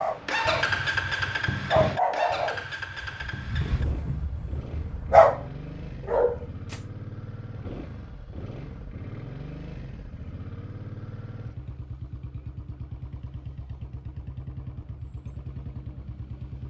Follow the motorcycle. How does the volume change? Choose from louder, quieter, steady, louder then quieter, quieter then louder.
quieter.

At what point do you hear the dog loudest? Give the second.
5 s.